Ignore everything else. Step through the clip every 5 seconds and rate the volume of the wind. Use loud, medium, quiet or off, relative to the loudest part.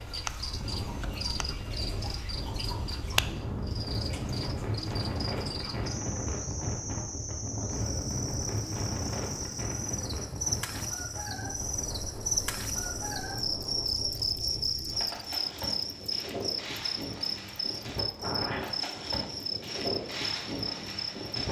loud, loud, medium, loud, loud.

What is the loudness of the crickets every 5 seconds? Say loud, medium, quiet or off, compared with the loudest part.
medium, medium, loud, loud, medium.